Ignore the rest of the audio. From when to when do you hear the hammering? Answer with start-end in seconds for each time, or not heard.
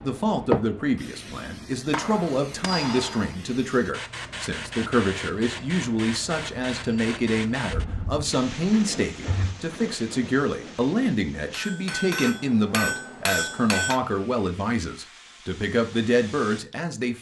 1.9-3.4, 11.5-14.0.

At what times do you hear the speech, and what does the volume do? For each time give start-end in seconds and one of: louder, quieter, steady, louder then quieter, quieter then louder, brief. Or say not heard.
0.0-17.1 steady.